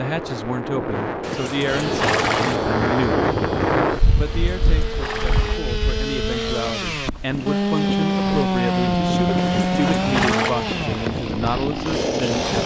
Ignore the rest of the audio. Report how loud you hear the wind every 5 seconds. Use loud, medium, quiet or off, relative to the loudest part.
loud, medium, medium.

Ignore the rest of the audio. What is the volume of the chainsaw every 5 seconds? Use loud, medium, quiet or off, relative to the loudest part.
medium, loud, loud.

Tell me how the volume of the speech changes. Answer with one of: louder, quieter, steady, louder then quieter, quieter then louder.
steady.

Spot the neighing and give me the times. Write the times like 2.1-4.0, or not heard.
1.2-2.6, 4.2-5.6, 9.3-10.6.